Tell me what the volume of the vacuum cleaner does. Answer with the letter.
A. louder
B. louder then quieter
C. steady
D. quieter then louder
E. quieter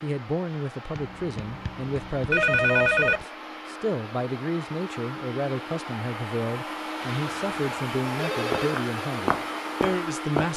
A.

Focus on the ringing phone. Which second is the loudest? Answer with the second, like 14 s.
3 s.